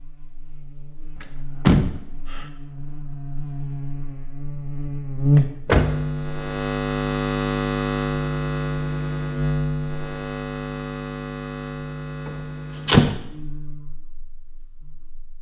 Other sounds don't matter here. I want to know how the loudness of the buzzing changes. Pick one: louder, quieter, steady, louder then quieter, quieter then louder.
louder then quieter.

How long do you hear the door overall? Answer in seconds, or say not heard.
3 s.